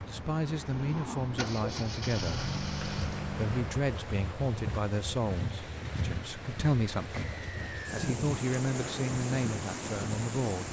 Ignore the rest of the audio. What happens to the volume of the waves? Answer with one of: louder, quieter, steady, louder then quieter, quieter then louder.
louder.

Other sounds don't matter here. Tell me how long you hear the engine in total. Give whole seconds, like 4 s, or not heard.
4 s.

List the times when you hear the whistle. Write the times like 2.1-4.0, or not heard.
7.2-8.2.